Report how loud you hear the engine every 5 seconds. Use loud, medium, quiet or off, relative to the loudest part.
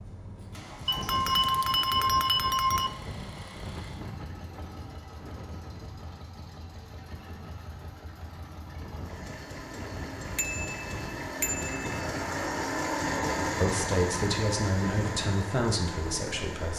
quiet, quiet, loud, medium.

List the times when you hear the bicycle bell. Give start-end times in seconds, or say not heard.
0.8-2.9, 10.3-11.9.